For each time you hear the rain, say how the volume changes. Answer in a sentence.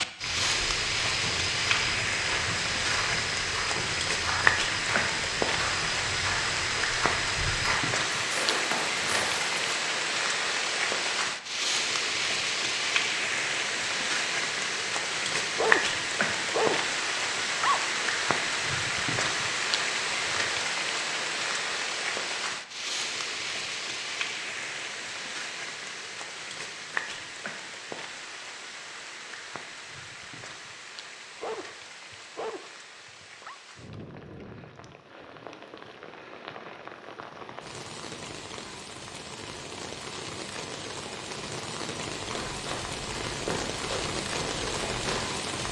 You can hear the rain from 0.0 to 45.6 s, getting quieter then louder.